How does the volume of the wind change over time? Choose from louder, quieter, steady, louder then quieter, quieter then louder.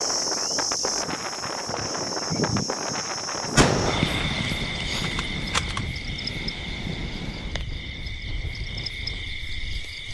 quieter.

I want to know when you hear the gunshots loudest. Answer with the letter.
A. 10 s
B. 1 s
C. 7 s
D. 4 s
D.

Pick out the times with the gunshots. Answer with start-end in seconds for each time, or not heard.
3.5-5.9.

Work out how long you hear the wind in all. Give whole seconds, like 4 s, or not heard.
10 s.